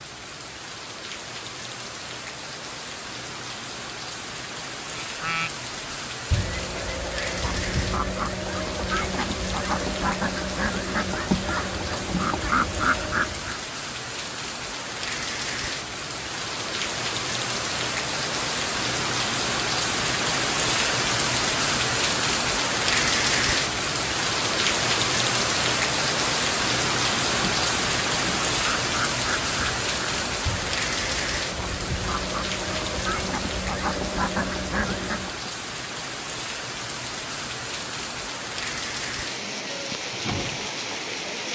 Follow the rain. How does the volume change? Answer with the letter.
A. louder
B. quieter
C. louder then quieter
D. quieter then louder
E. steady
C.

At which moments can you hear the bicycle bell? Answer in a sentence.
The bicycle bell can't be heard in this clip.